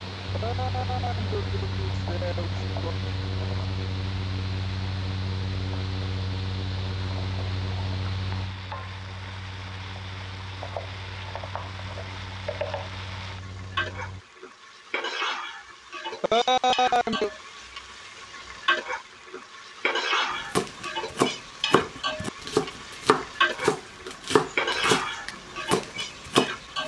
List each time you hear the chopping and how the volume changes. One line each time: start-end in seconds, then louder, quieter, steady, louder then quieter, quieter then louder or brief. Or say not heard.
20.3-26.8 steady.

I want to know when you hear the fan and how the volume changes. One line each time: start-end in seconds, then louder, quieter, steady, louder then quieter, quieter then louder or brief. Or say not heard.
0.0-14.2 quieter.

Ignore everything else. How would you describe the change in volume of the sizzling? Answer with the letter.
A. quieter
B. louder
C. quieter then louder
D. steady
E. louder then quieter
B.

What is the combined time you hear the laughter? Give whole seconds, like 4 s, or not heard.
4 s.